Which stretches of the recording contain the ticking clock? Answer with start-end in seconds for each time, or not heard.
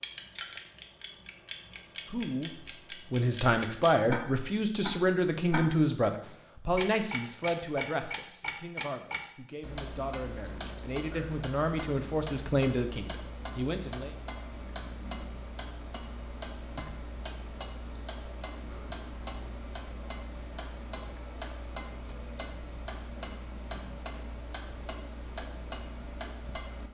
0.0-26.9.